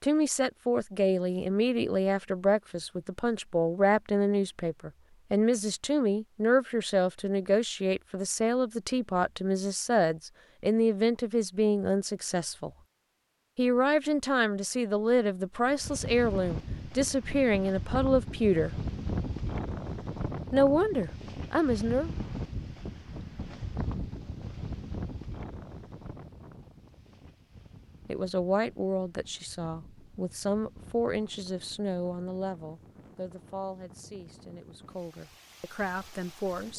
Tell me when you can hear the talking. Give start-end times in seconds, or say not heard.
0.0-12.7, 13.6-18.7, 20.5-22.1, 28.1-36.7.